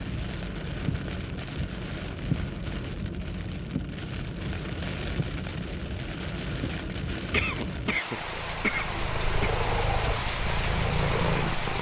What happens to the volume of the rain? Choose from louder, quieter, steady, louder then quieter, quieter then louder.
steady.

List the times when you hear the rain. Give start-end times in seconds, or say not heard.
0.0-11.7.